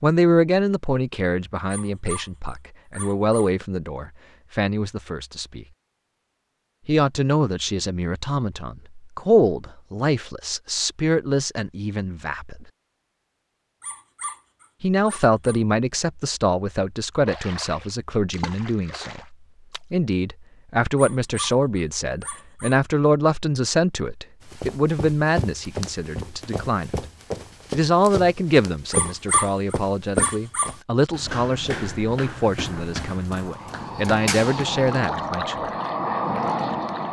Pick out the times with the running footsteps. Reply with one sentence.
You can hear the running footsteps from 24.4 to 34.9 s.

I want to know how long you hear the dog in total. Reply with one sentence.
You can hear the dog for 7 seconds altogether.